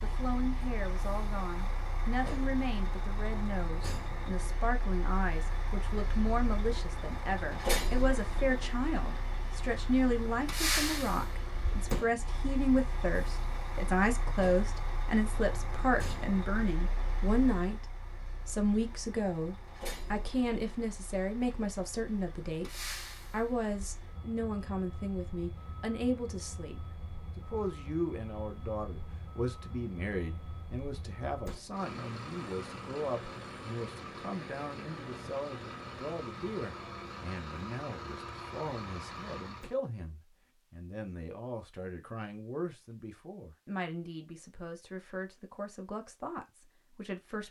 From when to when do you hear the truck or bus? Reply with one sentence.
The truck or bus can be heard from 0.0 to 39.8 s.